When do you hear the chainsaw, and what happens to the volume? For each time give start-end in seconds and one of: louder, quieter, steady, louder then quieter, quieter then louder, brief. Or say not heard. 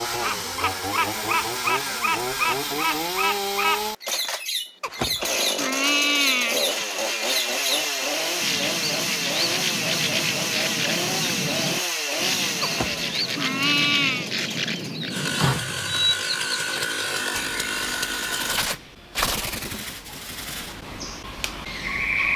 0.0-18.8 steady.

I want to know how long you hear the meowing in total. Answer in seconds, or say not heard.
4 s.